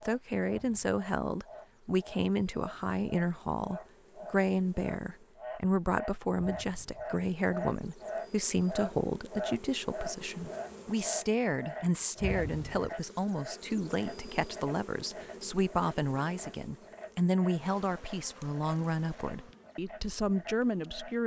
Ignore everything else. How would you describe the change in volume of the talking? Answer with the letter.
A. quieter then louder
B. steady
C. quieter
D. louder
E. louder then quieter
B.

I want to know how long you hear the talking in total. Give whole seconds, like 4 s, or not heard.
21 s.